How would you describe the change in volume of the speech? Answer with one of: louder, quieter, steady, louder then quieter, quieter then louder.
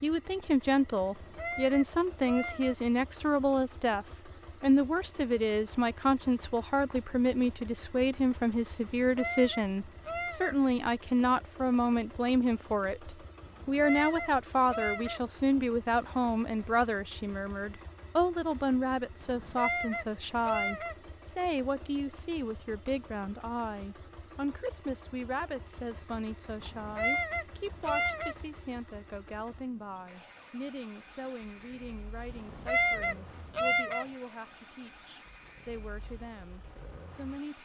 quieter.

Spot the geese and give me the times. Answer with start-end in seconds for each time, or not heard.
1.0-2.8, 8.8-10.6, 13.4-15.2, 19.2-20.9, 26.6-28.4, 32.3-34.0.